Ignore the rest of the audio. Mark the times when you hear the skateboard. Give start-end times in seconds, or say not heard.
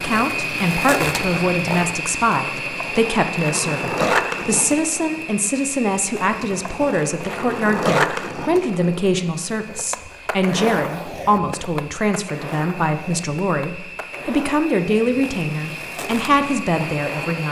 0.0-17.4.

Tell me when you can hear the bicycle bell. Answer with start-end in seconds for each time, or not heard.
not heard.